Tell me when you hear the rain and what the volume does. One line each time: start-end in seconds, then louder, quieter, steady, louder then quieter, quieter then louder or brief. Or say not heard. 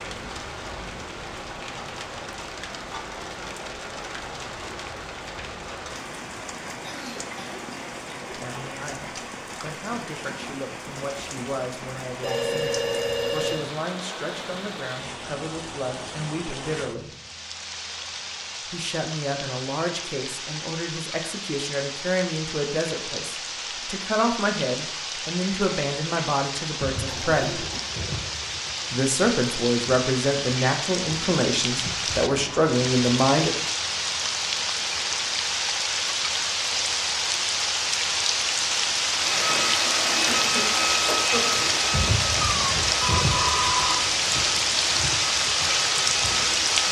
0.0-46.8 louder.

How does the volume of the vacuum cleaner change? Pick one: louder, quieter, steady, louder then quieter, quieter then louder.
quieter.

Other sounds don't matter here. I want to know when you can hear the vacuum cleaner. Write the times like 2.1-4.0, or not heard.
39.1-46.8.